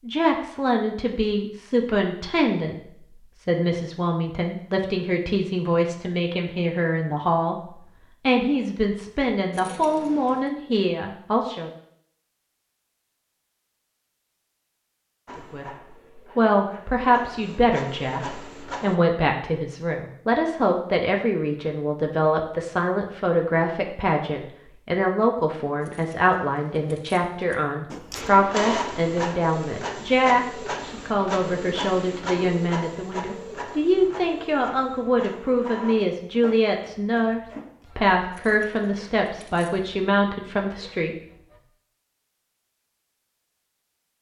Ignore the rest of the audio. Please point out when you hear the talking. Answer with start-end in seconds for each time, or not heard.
0.0-11.7, 15.3-41.1.